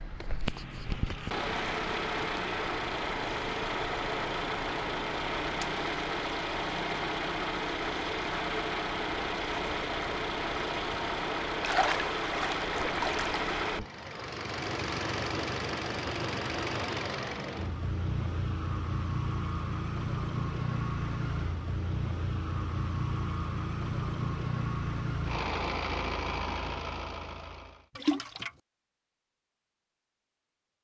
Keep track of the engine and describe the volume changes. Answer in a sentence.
The volume of the engine stays about the same.